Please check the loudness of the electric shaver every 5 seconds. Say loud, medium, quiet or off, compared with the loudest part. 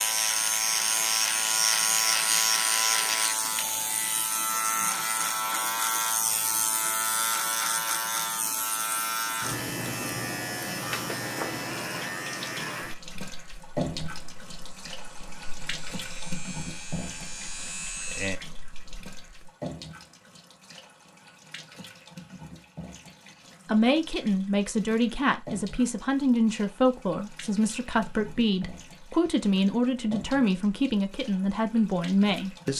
loud, loud, medium, quiet, off, off, off.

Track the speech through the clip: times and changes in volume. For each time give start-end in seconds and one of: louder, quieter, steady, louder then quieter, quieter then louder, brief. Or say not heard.
23.6-32.7 steady.